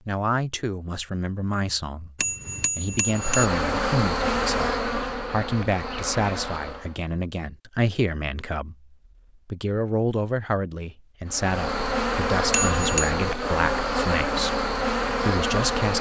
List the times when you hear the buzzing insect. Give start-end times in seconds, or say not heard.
3.0-7.0, 11.2-15.9.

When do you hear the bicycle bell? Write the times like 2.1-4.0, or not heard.
2.1-3.5, 12.5-13.1.